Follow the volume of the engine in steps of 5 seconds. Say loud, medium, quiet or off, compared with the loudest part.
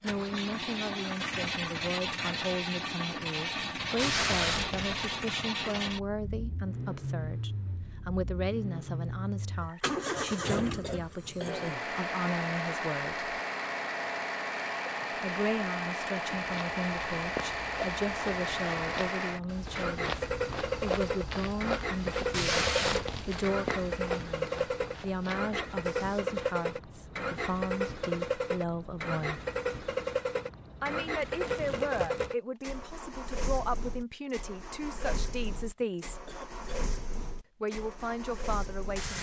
loud, loud, loud, loud, loud, loud, loud, medium.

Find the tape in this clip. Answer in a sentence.
You can hear the tape from 4.0 to 5.0 s, from 22.3 to 23.5 s and from 31.2 to 32.3 s.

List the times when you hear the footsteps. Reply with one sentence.
The footsteps can be heard from 16.5 to 26.2 s.